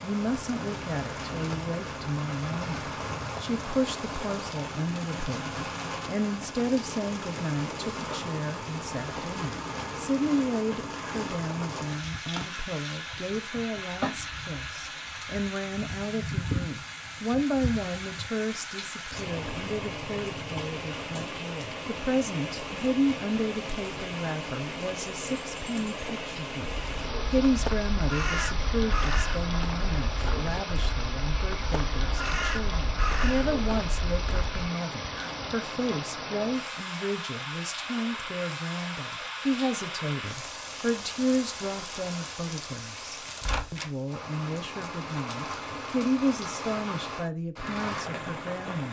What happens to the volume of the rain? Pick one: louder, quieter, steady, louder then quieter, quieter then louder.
steady.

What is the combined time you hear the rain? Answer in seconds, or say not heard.
49 s.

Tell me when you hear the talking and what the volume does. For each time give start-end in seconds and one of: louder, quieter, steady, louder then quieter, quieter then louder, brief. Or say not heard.
0.0-48.8 steady.